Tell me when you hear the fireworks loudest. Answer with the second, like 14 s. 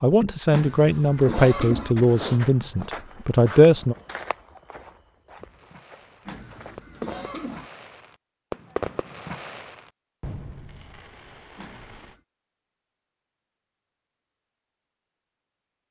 9 s.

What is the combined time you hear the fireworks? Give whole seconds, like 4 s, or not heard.
7 s.